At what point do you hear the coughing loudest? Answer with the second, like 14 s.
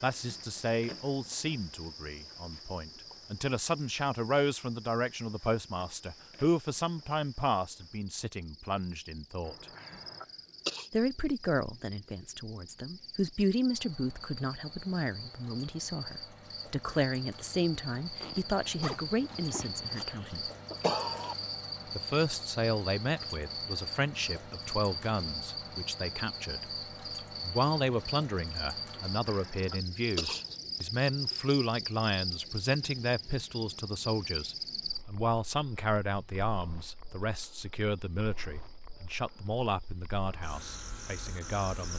21 s.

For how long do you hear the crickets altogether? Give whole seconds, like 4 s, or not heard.
42 s.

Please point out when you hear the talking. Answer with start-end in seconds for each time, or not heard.
0.0-9.7, 10.9-20.5, 21.9-26.6, 27.4-41.9.